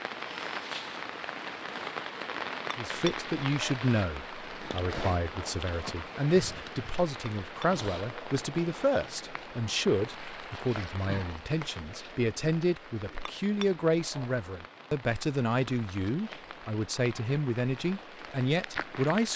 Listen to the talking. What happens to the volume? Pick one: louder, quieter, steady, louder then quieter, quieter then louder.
steady.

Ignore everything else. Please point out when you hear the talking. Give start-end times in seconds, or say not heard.
2.8-19.3.